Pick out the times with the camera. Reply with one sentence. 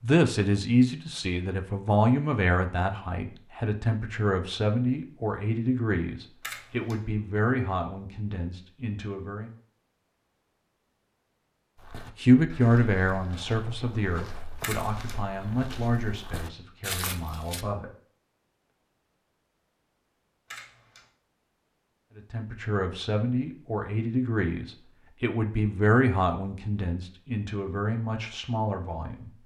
The camera can be heard from 6.4 to 7.0 s, from 14.6 to 15.2 s and from 20.5 to 21.1 s.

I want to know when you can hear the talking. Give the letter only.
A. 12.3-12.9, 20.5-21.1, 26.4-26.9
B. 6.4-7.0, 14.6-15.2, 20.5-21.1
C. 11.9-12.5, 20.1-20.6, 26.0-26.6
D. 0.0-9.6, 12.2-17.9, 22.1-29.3
D.